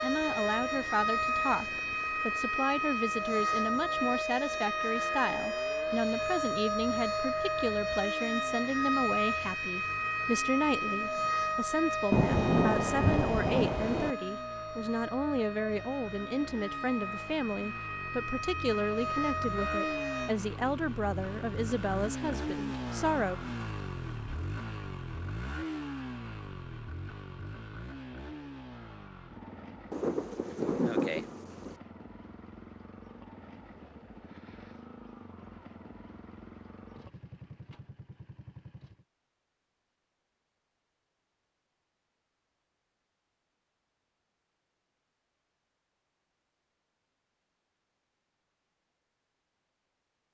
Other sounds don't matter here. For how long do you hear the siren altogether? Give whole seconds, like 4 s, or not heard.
20 s.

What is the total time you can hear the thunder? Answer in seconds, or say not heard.
4 s.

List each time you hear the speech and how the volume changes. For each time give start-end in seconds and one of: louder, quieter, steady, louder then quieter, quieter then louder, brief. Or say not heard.
0.0-23.4 steady.